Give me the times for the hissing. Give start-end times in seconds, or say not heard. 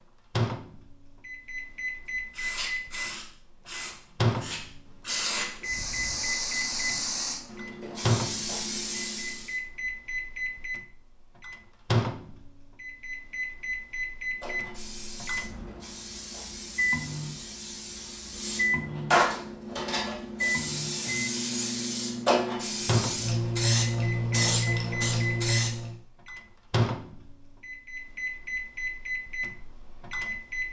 2.4-9.6, 14.4-25.9.